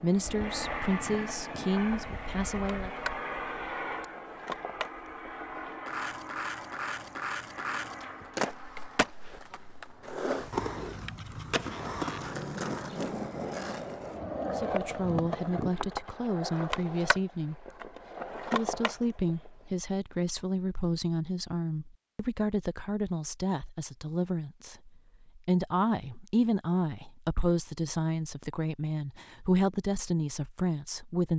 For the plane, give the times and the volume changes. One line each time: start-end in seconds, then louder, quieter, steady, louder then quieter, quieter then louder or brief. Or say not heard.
0.0-9.2 quieter.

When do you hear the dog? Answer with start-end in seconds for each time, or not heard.
not heard.